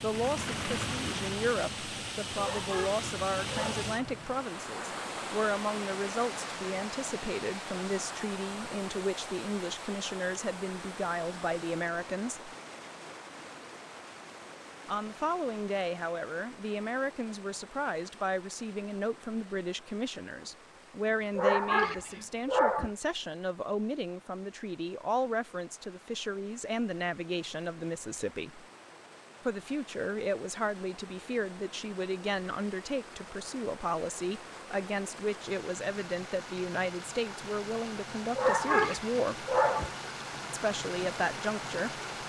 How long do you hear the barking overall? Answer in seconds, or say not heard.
5 s.